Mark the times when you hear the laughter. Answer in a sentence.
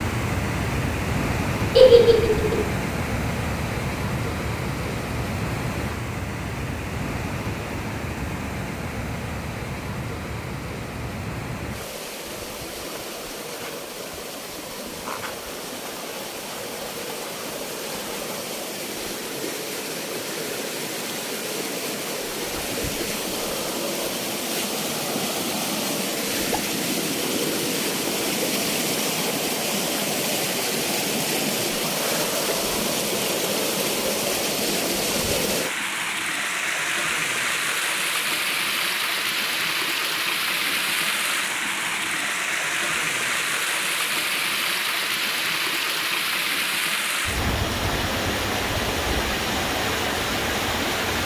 The laughter can be heard from 1.8 to 2.5 s.